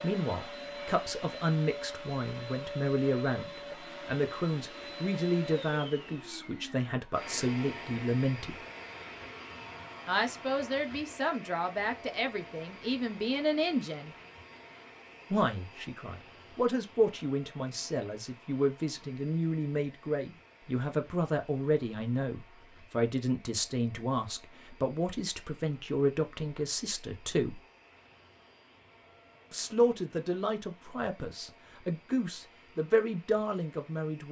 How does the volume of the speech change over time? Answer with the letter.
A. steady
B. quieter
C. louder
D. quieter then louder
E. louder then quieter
A.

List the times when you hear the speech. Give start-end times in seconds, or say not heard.
0.0-8.6, 10.1-14.2, 15.3-27.6, 29.5-34.2.